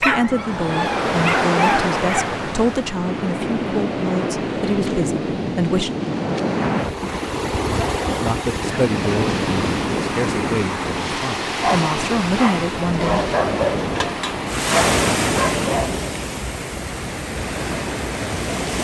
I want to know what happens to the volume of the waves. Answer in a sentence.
The volume of the waves stays about the same.